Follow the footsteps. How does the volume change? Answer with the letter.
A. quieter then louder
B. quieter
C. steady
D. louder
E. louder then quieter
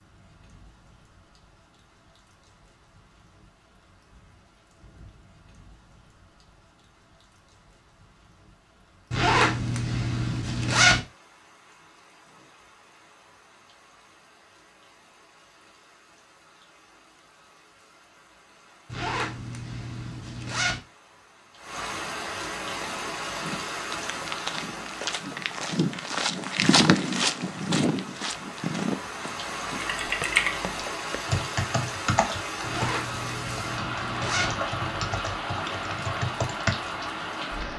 E.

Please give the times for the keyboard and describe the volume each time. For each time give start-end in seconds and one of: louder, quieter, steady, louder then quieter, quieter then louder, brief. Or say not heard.
29.8-36.8 quieter.